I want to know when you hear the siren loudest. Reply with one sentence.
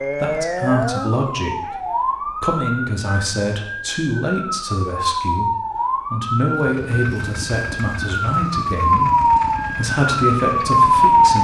The volume of the siren peaks at 11 seconds.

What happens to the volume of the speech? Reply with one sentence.
The loudness of the speech stays about the same.